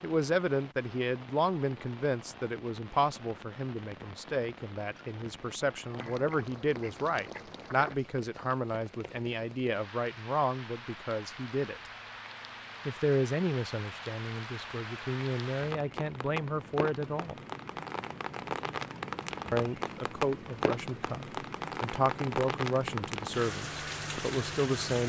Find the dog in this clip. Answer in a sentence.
The dog can't be heard in this clip.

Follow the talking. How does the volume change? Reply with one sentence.
The loudness of the talking stays about the same.